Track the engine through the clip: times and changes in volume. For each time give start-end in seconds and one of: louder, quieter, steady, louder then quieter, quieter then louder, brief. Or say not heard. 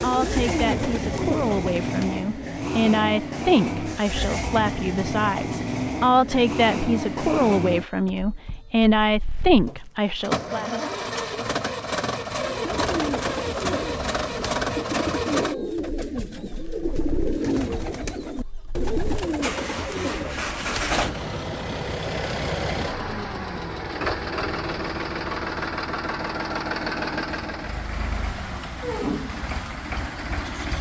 0.0-30.7 steady.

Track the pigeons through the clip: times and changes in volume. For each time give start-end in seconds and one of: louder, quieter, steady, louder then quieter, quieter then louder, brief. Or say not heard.
0.0-2.1 brief
12.4-21.0 steady.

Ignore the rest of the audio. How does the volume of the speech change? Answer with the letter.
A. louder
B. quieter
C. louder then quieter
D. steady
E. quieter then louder
A.